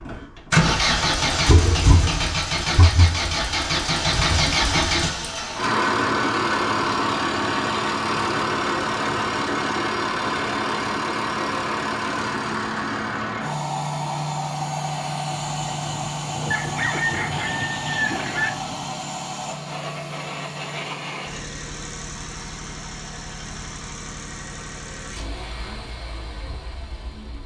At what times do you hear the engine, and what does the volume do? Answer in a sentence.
You can hear the engine from 0.0 to 27.4 s, getting quieter.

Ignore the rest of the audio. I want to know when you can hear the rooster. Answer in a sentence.
You can hear the rooster from 16.5 to 18.5 s.